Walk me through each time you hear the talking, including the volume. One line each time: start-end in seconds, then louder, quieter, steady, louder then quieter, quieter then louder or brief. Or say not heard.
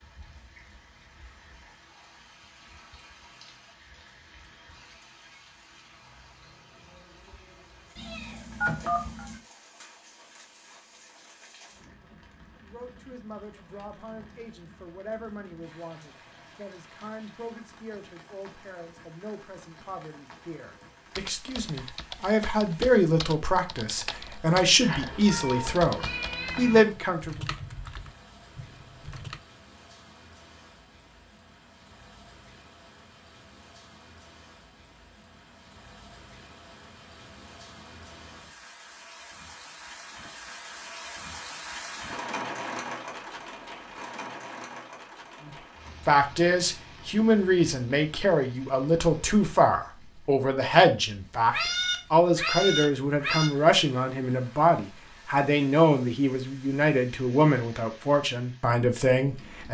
12.6-27.4 louder
45.5-59.6 steady.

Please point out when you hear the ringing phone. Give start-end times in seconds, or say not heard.
8.6-9.2.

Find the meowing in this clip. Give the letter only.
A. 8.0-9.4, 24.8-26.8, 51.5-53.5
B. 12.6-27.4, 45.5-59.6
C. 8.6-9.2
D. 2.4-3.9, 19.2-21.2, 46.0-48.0
A.